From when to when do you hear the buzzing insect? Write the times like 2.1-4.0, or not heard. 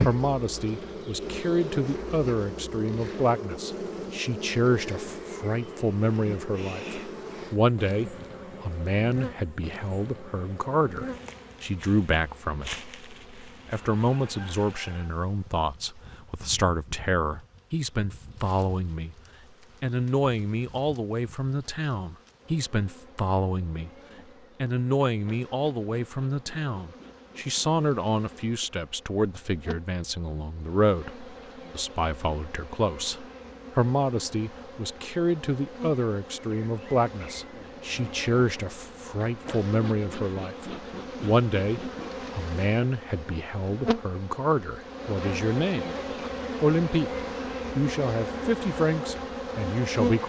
0.0-50.2.